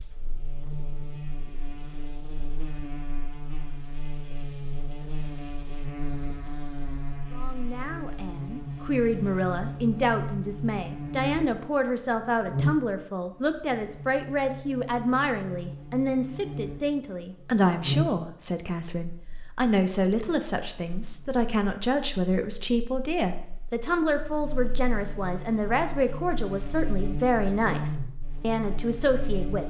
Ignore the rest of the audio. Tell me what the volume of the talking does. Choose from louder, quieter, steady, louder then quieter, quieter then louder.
steady.